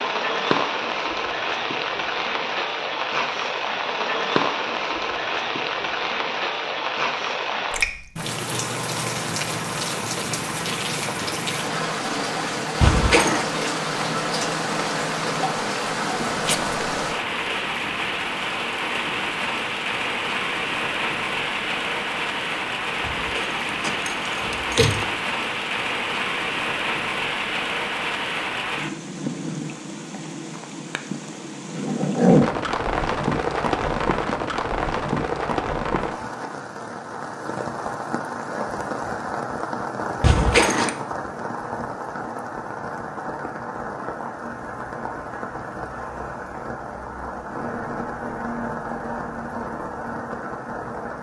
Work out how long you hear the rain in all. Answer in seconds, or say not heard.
51 s.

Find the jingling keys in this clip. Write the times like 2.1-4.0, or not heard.
12.8-13.4, 23.0-25.1, 40.2-40.9.